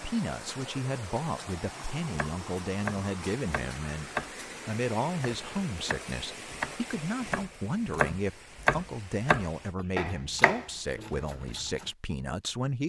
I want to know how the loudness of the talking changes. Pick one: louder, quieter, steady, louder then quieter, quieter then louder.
steady.